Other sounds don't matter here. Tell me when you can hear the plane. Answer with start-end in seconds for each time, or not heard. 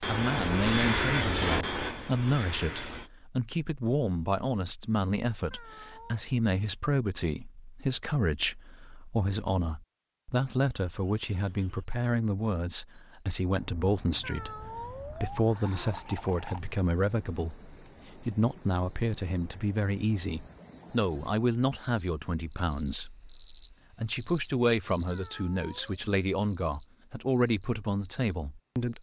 0.0-3.1.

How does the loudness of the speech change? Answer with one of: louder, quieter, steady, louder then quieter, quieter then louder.
steady.